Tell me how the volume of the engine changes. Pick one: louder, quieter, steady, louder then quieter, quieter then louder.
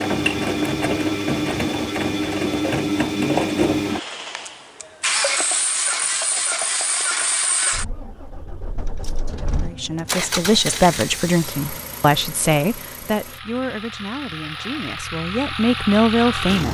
quieter.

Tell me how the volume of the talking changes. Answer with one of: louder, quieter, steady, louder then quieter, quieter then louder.
quieter then louder.